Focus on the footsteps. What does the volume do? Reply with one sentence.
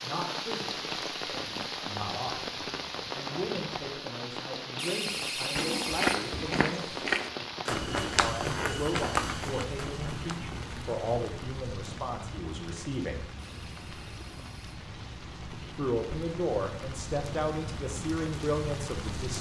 The volume of the footsteps goes down.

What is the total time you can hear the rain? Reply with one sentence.
You can hear the rain for 19 seconds altogether.